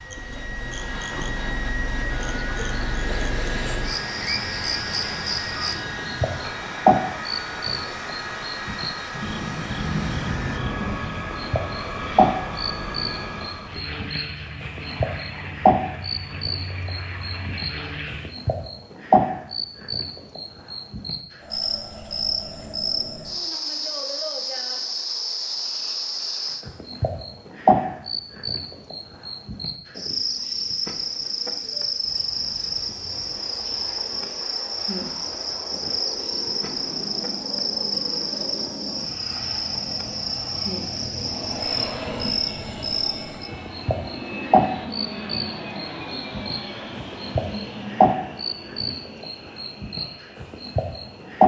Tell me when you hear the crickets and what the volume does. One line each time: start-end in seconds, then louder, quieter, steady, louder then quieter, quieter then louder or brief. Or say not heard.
0.1-51.4 steady.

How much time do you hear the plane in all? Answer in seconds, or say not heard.
38 s.